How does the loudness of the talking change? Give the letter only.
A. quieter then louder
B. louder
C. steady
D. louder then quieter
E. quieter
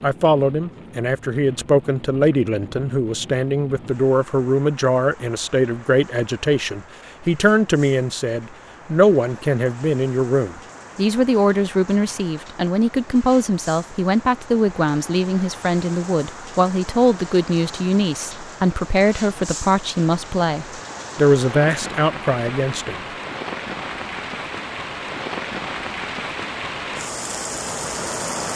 C.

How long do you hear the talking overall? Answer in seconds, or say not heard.
23 s.